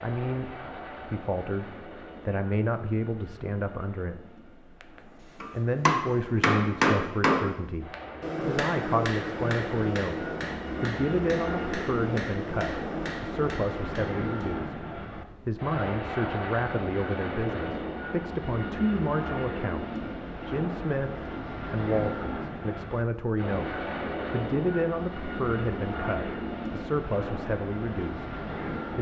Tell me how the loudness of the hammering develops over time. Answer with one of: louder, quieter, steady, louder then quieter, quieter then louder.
quieter.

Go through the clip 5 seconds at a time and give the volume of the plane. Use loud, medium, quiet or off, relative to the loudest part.
medium, medium, loud, loud, loud, loud.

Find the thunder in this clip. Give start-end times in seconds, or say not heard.
not heard.